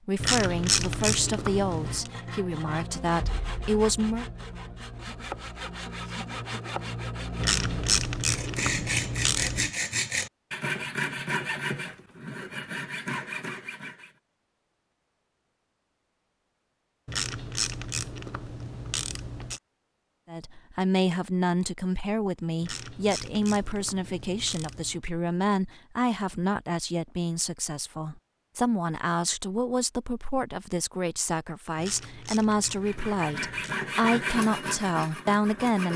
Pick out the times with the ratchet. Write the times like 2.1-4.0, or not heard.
0.1-2.1, 7.3-9.7, 17.1-19.6, 22.6-25.1, 31.8-33.8.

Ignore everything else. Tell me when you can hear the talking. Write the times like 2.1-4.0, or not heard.
0.1-4.2, 20.2-35.9.